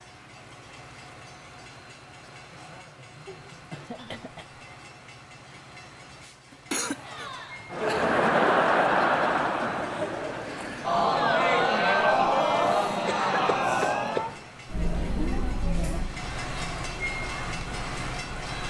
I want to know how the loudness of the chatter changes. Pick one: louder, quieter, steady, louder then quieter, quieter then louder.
quieter.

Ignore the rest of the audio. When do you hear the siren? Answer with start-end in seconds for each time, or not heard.
not heard.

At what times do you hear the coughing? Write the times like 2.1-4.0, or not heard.
3.2-4.6, 6.5-7.3, 13.1-14.2.